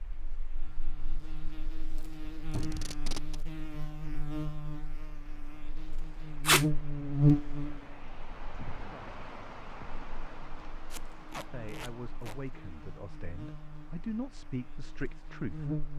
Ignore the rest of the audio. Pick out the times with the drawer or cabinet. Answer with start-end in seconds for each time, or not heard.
2.5-3.0.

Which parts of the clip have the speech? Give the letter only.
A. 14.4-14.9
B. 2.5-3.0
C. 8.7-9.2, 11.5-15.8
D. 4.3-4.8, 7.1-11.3
C.